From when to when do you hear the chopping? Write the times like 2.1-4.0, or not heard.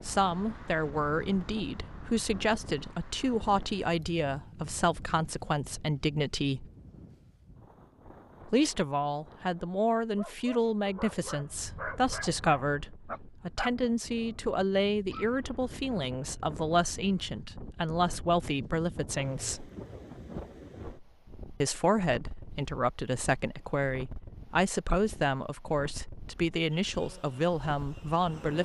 not heard.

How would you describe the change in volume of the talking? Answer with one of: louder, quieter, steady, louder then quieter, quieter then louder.
steady.